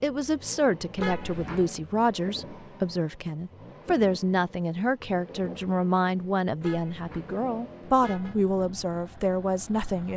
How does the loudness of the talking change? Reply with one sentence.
The loudness of the talking stays about the same.